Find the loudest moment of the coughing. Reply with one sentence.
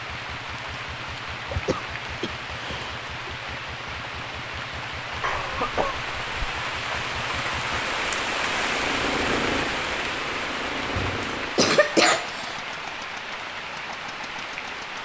The loudest moment of the coughing is at 12 seconds.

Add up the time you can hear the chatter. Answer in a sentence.
You can't hear the chatter here.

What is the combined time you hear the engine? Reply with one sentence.
You can hear the engine for 15 seconds altogether.